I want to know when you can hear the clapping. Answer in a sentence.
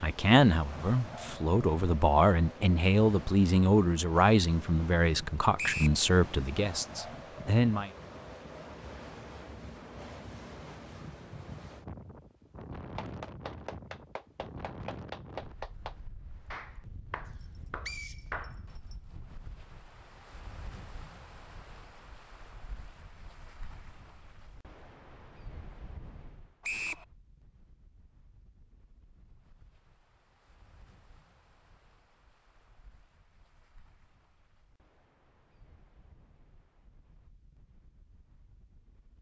You can hear the clapping from 12.9 to 18.6 s.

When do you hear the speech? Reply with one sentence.
You can hear the speech from 0.0 to 7.9 s.